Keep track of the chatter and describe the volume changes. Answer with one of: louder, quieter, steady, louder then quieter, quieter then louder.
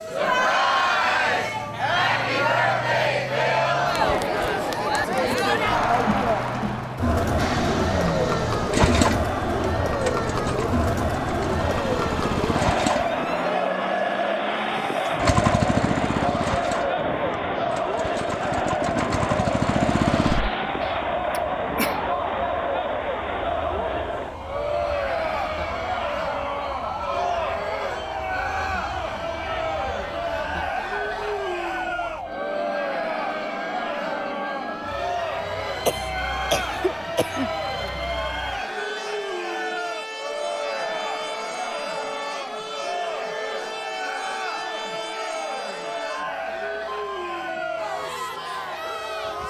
quieter.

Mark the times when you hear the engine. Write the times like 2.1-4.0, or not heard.
7.3-13.2, 15.2-20.5.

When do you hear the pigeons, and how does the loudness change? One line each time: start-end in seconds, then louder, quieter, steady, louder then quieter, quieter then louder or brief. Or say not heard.
not heard.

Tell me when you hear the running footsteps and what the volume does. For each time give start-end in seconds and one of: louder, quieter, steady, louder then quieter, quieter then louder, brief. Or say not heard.
not heard.